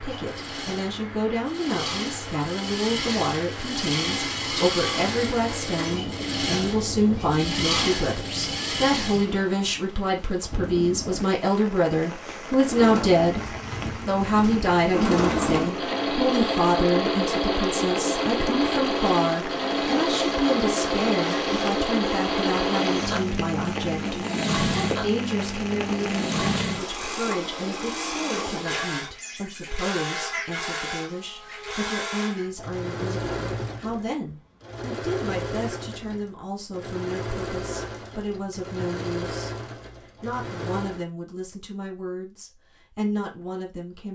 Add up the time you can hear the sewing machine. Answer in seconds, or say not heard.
38 s.